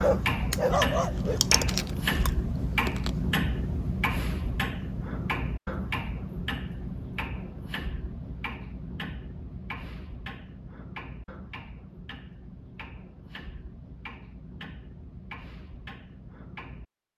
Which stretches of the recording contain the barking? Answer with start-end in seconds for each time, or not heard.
0.0-1.9.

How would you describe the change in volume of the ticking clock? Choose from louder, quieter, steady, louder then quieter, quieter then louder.
quieter.